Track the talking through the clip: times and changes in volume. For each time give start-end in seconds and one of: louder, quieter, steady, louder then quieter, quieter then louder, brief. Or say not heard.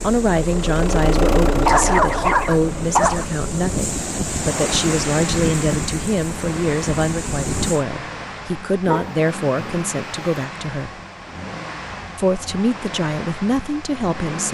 0.0-10.9 steady
12.2-14.4 brief.